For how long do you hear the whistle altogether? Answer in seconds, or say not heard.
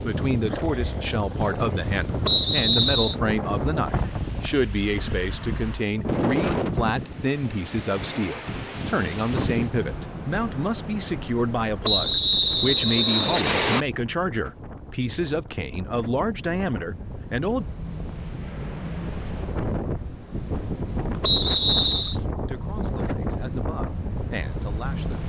4 s.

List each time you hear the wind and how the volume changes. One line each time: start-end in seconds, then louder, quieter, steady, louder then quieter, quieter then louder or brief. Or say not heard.
0.0-25.2 quieter then louder.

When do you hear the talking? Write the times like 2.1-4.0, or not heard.
0.0-17.6, 22.0-25.2.